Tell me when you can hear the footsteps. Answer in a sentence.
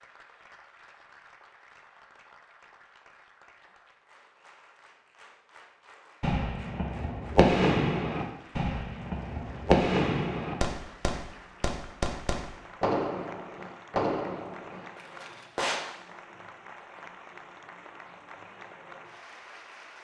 You can't hear the footsteps here.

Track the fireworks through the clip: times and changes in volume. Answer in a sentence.
You can hear the fireworks from 6.2 to 15.8 s, getting quieter.